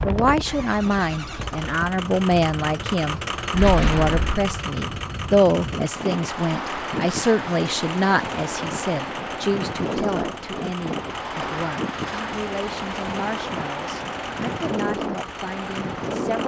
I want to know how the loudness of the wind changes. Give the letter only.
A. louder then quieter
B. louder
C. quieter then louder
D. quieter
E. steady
B.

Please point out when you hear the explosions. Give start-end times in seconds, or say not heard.
3.5-4.5.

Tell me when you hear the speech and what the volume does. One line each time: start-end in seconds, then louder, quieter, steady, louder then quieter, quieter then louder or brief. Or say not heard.
0.0-16.4 quieter.